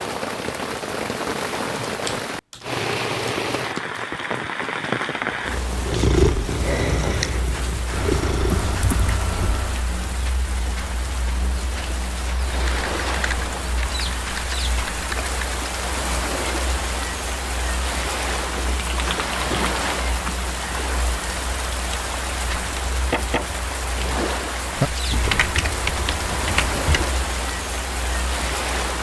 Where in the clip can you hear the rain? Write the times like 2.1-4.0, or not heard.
0.0-28.9.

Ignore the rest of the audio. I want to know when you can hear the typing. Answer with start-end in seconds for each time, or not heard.
1.4-4.0, 8.0-9.8, 12.7-15.6, 18.8-20.4, 25.1-27.1.